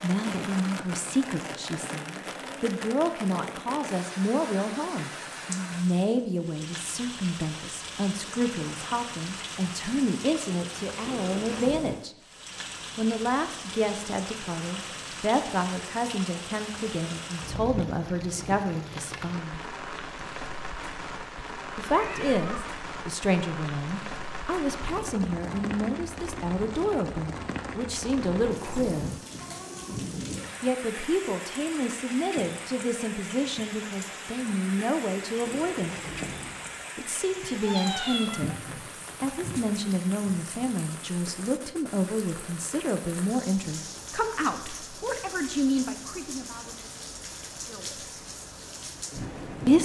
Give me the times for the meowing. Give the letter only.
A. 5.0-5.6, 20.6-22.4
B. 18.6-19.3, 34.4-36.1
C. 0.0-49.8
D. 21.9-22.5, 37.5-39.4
D.